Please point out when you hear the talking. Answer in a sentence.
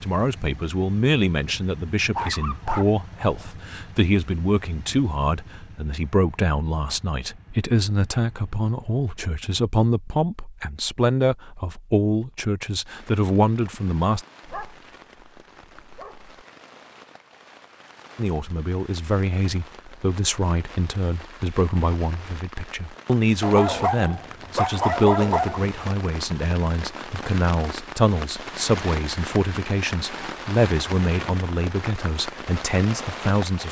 The talking can be heard from 0.0 to 14.2 s and from 18.1 to 33.6 s.